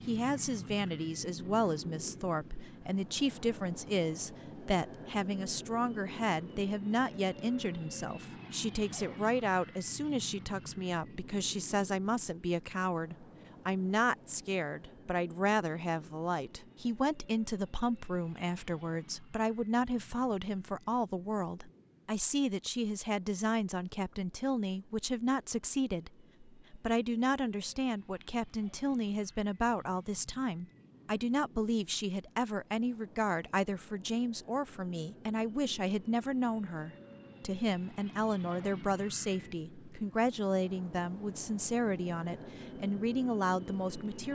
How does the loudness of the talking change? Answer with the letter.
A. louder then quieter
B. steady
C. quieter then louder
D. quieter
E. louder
B.